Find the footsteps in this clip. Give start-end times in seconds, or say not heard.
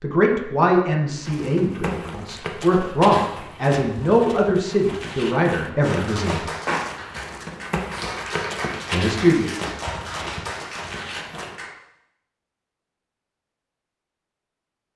1.1-11.6.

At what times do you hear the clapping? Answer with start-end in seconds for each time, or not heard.
5.8-11.8.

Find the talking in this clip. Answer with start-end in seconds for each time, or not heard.
0.0-6.5, 8.9-9.5.